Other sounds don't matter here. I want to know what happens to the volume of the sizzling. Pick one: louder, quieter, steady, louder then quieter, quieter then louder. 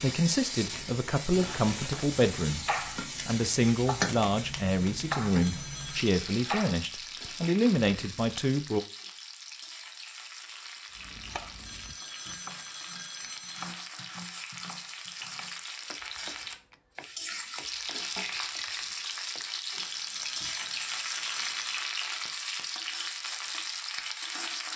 quieter then louder.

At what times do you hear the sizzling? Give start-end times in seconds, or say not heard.
0.0-24.7.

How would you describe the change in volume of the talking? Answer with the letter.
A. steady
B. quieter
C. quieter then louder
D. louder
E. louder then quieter
A.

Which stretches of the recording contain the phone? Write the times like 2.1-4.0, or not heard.
5.4-6.1, 11.7-13.7, 19.8-21.8.